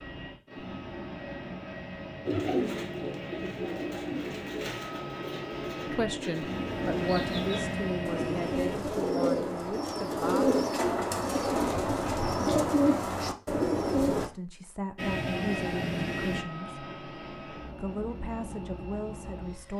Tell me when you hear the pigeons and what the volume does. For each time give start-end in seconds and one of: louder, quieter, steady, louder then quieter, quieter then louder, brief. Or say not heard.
2.2-14.3 louder.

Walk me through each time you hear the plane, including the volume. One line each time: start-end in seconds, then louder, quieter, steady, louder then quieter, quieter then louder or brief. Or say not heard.
0.0-8.8 louder
14.9-19.7 quieter.